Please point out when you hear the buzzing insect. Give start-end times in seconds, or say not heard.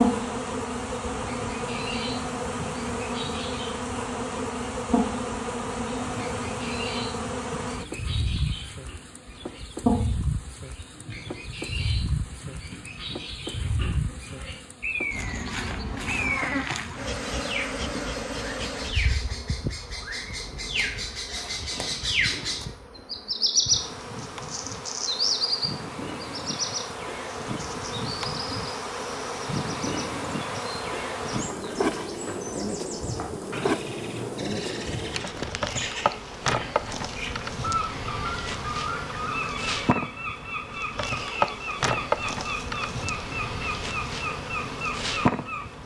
0.0-45.8.